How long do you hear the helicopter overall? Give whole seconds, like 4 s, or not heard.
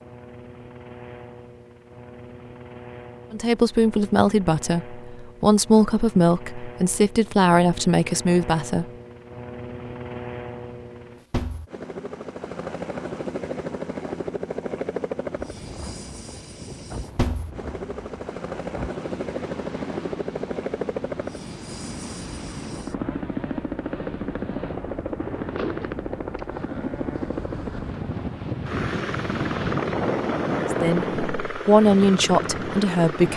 33 s.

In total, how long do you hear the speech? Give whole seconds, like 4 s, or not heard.
8 s.